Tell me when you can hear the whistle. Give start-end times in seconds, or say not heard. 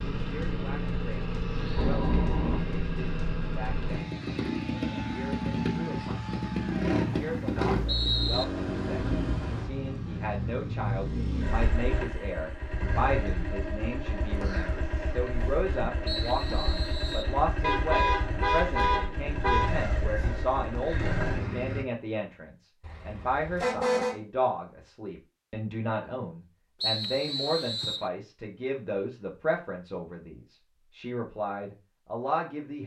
6.9-8.4, 16.1-17.4, 26.8-28.1.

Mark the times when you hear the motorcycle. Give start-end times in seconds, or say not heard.
0.0-21.9.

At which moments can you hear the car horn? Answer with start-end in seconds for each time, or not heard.
1.8-2.6, 17.6-19.8, 22.8-24.2.